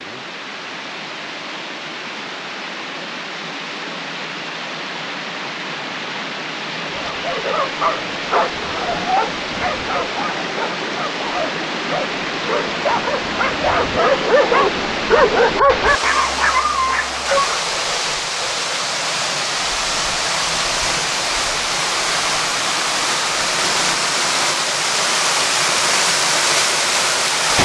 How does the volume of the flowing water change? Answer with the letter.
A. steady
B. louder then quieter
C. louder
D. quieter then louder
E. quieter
C.